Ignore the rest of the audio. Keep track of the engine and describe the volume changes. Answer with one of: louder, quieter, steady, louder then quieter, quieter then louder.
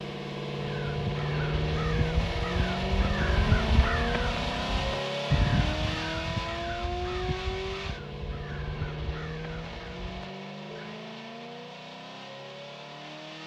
quieter.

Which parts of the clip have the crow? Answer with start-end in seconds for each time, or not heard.
0.6-10.9.